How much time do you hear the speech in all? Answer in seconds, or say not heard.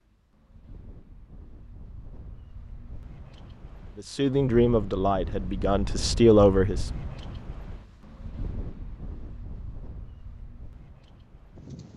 3 s.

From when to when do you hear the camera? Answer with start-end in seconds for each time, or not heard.
not heard.